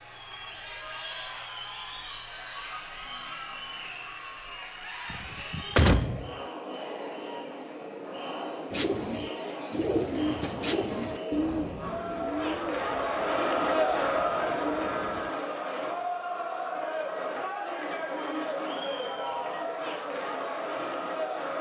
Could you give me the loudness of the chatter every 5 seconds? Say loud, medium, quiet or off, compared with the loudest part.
medium, medium, loud, loud, loud.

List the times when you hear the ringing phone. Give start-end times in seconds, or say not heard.
not heard.